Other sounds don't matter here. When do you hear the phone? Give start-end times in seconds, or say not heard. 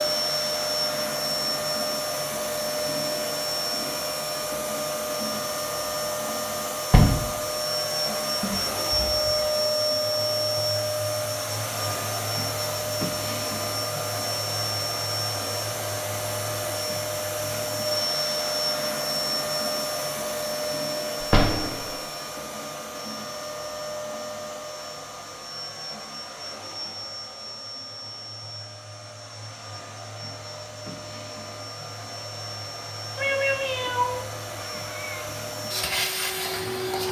not heard.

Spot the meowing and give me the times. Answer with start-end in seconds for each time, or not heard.
8.4-9.6, 33.1-35.4.